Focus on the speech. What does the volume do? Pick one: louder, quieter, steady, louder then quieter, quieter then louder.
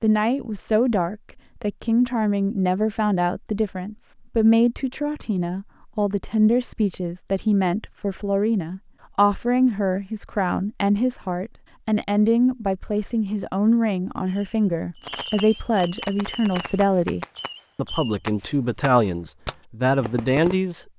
steady.